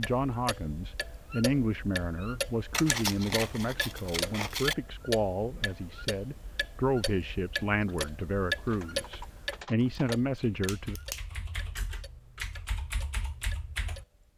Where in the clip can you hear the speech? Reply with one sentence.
You can hear the speech from 0.0 to 11.0 s.